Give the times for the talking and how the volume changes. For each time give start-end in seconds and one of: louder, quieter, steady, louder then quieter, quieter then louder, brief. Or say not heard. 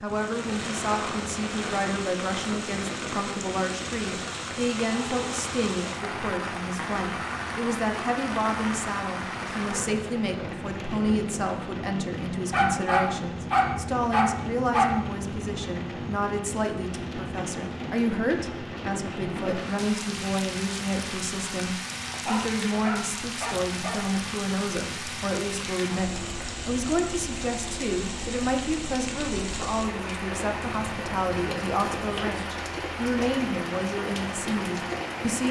0.0-35.4 steady.